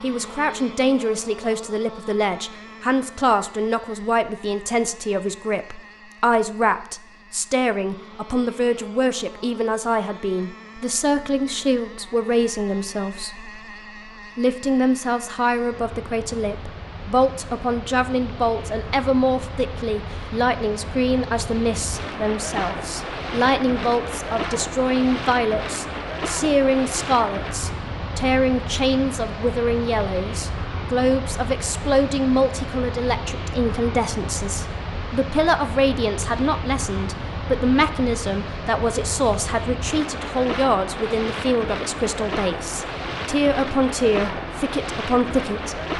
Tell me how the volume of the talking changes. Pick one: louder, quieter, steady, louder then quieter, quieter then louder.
steady.